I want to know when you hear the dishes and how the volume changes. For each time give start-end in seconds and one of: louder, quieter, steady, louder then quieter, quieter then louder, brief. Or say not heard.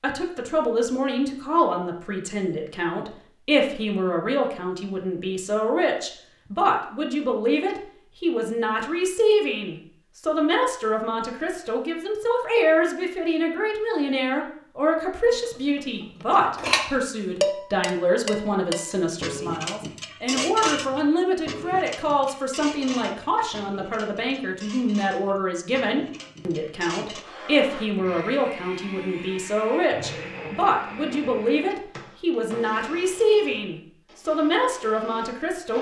15.3-27.2 quieter.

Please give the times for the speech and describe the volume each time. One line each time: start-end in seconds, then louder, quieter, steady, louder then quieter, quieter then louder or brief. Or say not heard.
0.0-35.7 steady.